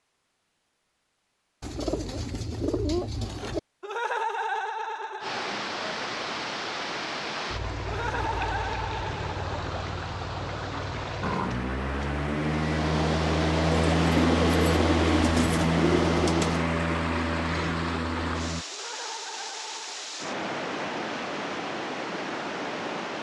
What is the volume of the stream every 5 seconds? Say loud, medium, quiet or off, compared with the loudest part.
off, loud, loud, loud, loud.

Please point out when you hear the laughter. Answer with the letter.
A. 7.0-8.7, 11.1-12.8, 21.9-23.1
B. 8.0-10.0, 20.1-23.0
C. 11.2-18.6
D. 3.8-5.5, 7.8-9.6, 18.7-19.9
D.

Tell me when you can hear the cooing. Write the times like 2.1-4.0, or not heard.
1.6-3.6, 13.7-16.6.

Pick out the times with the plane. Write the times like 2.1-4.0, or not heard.
11.2-18.6.